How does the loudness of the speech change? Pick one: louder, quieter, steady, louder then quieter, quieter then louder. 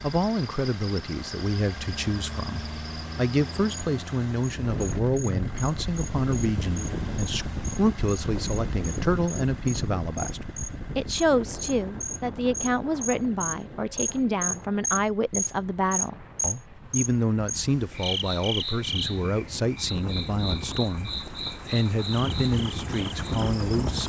steady.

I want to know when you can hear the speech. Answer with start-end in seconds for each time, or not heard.
0.0-24.0.